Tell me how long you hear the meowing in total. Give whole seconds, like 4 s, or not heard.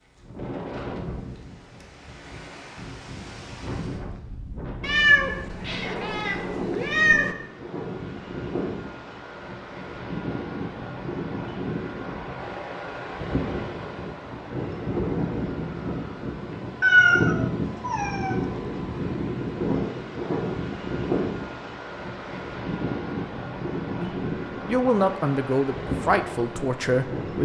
4 s.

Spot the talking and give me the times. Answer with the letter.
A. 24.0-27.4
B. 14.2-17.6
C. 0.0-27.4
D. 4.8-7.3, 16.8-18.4
A.